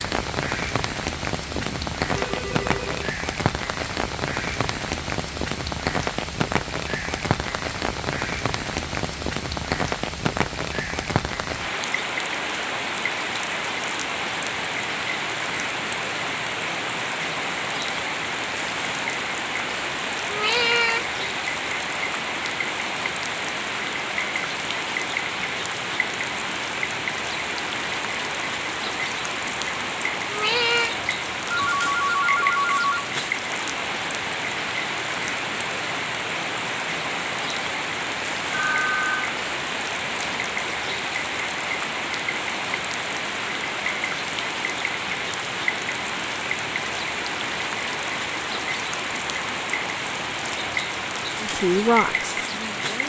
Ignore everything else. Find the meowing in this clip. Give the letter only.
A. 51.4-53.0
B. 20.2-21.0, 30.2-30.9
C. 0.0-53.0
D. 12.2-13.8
B.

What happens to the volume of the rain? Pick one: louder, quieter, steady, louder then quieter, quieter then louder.
steady.